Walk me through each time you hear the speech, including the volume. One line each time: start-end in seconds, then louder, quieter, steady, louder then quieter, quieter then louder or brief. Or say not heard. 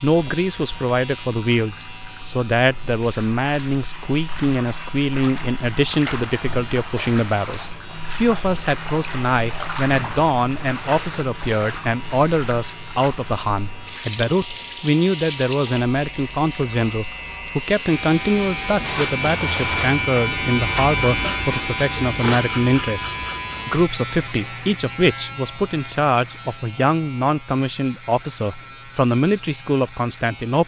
0.0-30.6 steady.